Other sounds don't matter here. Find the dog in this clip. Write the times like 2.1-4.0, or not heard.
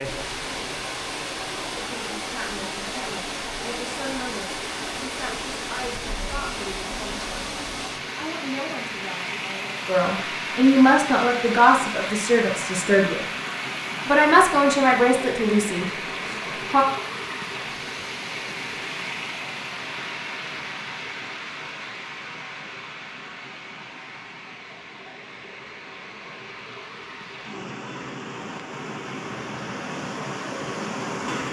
not heard.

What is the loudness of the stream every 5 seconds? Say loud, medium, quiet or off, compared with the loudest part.
loud, loud, loud, loud, medium, medium, loud.